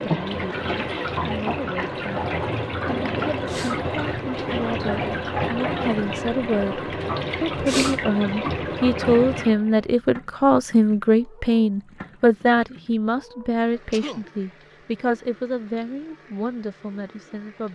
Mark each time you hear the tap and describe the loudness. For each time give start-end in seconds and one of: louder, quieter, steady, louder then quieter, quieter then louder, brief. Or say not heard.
0.0-17.6 quieter.